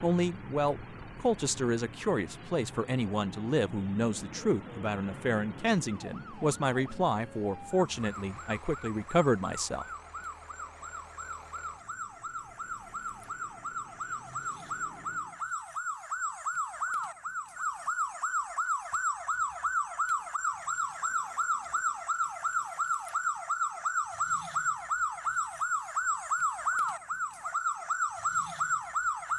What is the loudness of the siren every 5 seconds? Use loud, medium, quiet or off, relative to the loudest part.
quiet, quiet, medium, loud, loud, loud.